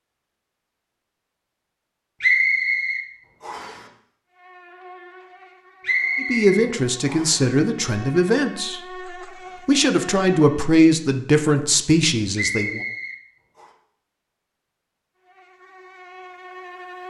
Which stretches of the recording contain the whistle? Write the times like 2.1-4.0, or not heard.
2.2-3.8, 5.8-7.4, 12.3-13.7.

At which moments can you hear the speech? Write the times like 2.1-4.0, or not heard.
6.2-8.8, 9.7-12.8.